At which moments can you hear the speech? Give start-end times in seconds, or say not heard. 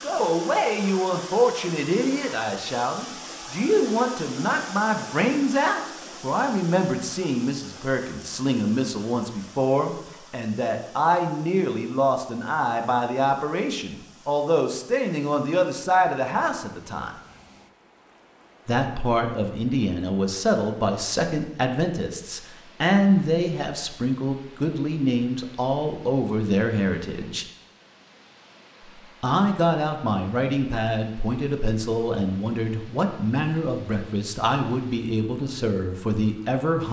0.0-17.1, 18.6-27.4, 29.2-36.8.